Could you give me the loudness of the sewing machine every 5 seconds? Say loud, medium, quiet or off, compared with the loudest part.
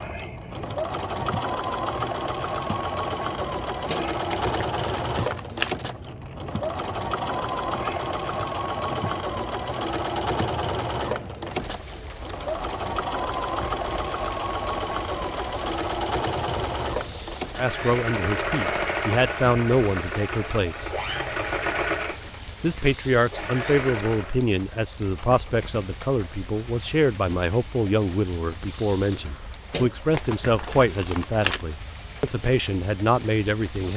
loud, loud, loud, loud, loud, off, off.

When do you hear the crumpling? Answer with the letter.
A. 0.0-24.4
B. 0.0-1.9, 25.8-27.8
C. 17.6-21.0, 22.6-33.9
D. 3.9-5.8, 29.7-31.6
D.